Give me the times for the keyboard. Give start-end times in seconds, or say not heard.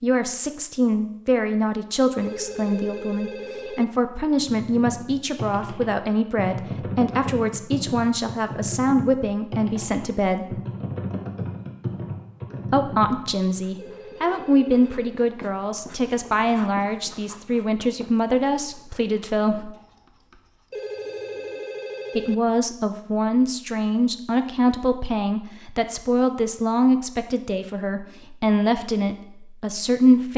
4.3-13.6.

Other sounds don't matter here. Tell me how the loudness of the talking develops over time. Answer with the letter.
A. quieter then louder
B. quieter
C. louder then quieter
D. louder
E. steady
E.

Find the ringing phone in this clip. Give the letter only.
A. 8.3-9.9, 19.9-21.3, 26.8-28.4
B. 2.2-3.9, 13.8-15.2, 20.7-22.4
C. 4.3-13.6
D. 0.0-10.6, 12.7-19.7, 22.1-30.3
B.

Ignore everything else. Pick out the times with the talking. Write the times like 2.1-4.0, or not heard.
0.0-10.6, 12.7-19.7, 22.1-30.3.